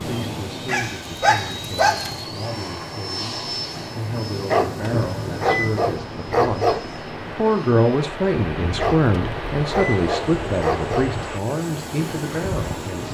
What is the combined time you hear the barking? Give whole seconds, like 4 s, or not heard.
6 s.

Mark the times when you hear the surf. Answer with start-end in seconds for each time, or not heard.
0.0-13.0.